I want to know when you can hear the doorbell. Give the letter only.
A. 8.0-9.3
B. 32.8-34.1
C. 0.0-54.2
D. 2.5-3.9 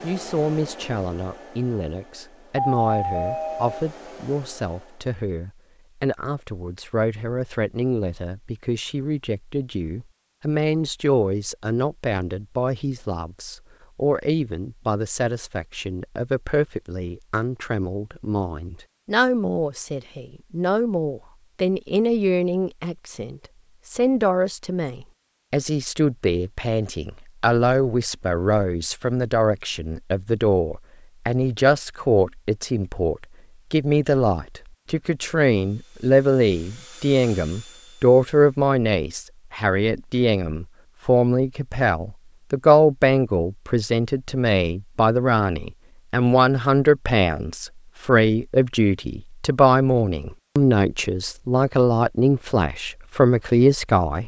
D.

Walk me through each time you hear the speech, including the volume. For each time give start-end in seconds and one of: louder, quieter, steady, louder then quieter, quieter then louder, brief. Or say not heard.
0.0-54.2 louder.